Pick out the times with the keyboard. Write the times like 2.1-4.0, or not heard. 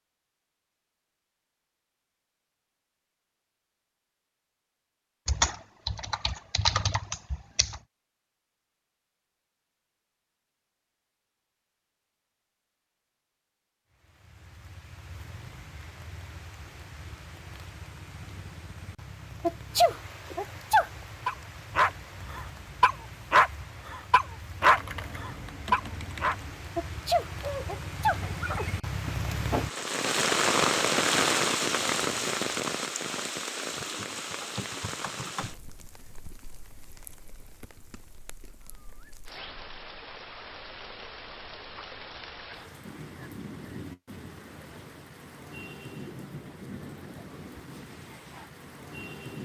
5.2-7.8, 24.6-26.6, 33.8-35.6.